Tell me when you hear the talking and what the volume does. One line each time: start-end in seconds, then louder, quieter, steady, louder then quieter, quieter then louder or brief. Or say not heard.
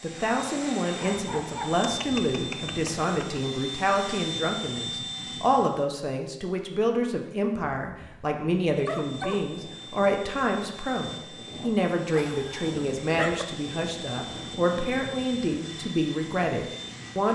0.0-17.3 steady.